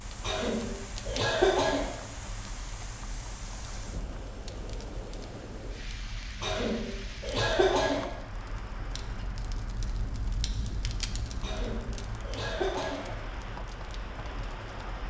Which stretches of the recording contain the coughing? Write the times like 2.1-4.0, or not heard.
0.2-1.9, 6.4-8.1, 11.4-13.2.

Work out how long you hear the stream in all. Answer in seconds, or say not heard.
15 s.